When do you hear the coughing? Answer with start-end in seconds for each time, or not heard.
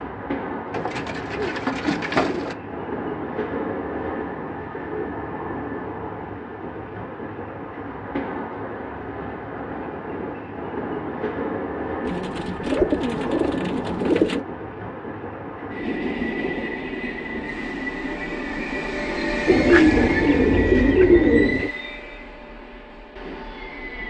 not heard.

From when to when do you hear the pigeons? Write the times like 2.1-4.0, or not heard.
0.7-2.5, 12.0-14.4, 19.4-21.7.